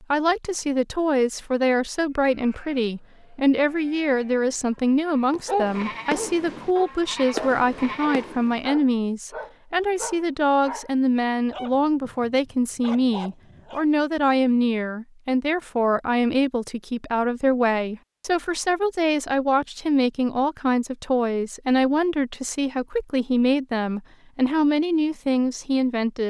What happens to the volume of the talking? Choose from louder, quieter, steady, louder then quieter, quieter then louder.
steady.